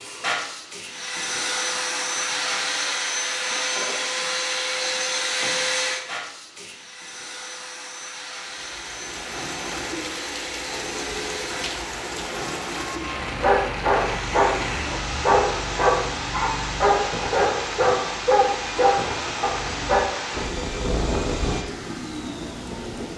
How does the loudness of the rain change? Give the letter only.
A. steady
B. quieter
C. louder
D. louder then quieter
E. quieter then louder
A.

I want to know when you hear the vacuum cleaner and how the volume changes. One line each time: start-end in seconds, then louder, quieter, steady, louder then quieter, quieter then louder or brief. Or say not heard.
0.0-23.1 quieter.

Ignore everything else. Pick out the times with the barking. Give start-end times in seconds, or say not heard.
13.2-20.1.